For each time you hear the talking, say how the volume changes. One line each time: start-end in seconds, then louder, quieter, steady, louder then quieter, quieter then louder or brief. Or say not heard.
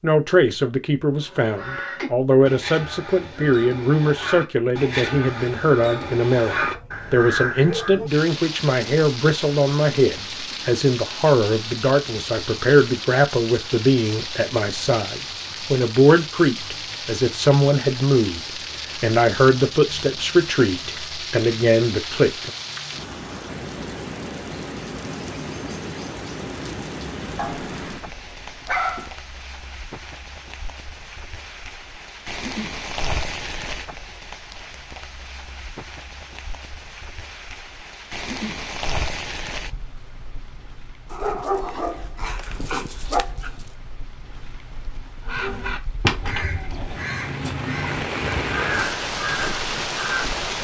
0.0-22.5 steady.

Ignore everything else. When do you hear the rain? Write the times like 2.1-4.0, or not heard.
8.1-50.5.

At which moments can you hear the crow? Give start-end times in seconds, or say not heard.
1.1-8.0, 45.2-50.2.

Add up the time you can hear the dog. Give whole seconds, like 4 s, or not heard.
6 s.